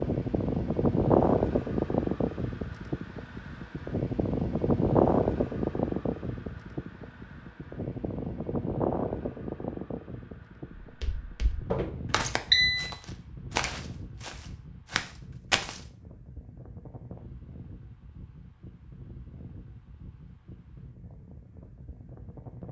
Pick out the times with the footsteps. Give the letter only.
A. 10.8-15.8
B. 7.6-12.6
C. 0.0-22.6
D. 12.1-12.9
A.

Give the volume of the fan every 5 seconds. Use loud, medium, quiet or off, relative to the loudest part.
loud, loud, quiet, quiet, quiet.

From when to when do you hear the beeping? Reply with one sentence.
You can hear the beeping from 12.1 to 12.9 s.